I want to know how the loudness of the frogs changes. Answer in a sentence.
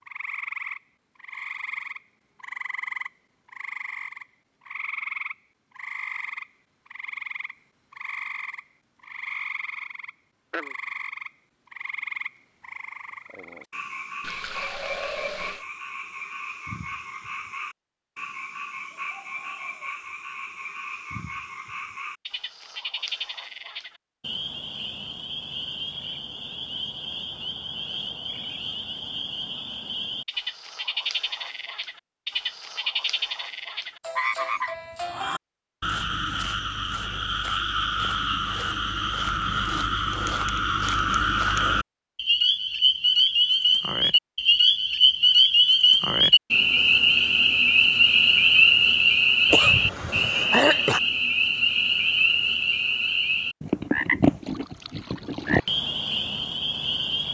The loudness of the frogs goes up.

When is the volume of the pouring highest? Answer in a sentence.
The loudest moment of the pouring is at 15 seconds.